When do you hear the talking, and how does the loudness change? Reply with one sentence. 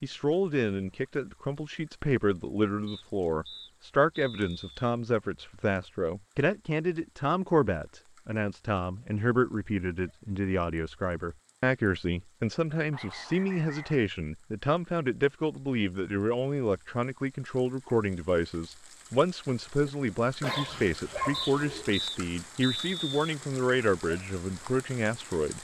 The talking can be heard from 0.0 to 25.5 s, at a steady volume.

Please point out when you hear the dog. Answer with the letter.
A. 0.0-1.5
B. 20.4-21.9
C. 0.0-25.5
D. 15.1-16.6
B.